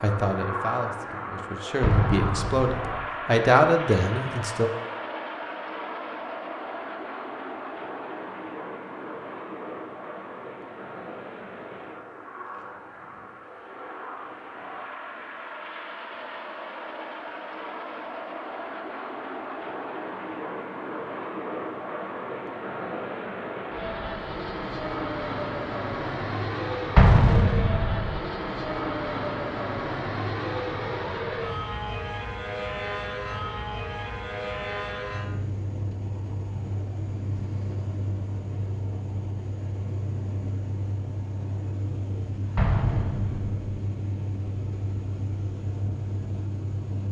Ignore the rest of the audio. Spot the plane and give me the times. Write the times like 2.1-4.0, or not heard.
0.0-47.0.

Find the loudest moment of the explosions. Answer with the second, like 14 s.
27 s.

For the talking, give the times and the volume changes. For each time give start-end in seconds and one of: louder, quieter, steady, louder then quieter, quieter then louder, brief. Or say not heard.
0.0-4.7 louder.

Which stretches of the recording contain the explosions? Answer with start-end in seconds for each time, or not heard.
1.8-3.0, 26.9-28.2, 42.5-43.6.